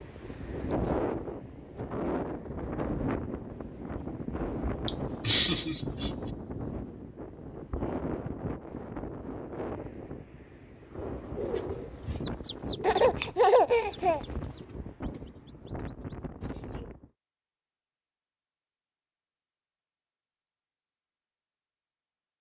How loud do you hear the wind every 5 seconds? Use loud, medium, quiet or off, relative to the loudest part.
loud, loud, medium, medium, off.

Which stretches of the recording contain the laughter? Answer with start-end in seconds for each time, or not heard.
4.8-6.3, 12.8-14.2.